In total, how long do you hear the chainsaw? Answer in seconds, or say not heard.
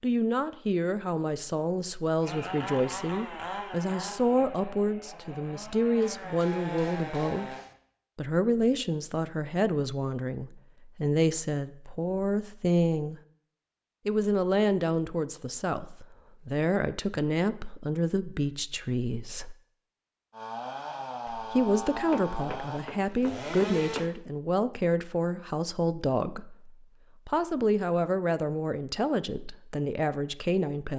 9 s.